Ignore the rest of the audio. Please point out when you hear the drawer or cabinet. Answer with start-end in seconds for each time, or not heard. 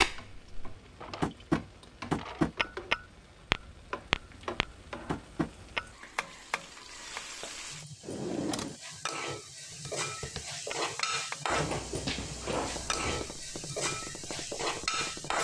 0.8-2.8, 8.0-8.8, 11.4-13.4.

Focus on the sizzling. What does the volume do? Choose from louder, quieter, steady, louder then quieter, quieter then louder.
louder.